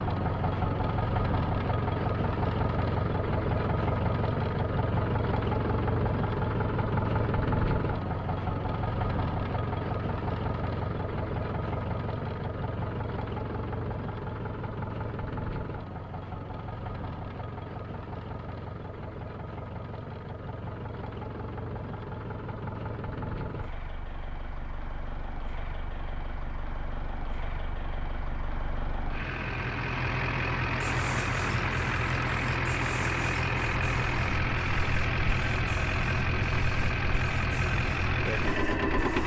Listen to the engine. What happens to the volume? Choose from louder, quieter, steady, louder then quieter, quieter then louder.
quieter then louder.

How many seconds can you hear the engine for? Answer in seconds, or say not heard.
39 s.